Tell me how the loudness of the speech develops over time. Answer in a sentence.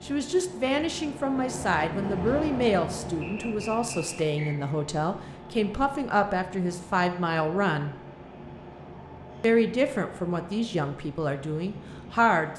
The loudness of the speech stays about the same.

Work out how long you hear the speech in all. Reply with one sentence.
The speech can be heard for 11 seconds in total.